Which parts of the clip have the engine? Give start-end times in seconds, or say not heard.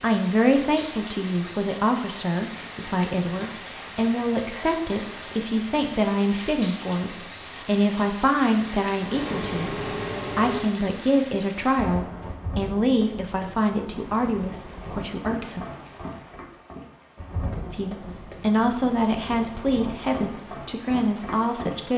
8.9-10.8.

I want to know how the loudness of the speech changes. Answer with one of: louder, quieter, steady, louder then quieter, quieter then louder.
steady.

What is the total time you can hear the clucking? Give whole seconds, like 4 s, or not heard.
not heard.